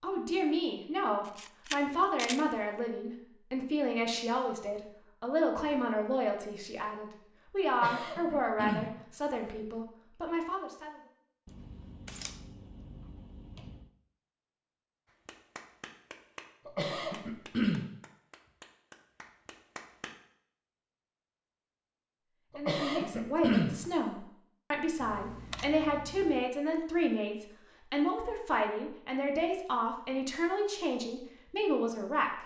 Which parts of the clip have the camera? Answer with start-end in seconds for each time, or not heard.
1.2-2.5, 11.4-13.9, 25.0-26.4.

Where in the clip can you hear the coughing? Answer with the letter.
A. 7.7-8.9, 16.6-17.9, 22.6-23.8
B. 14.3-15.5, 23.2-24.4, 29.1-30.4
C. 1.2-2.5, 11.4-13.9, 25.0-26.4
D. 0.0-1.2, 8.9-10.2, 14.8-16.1
A.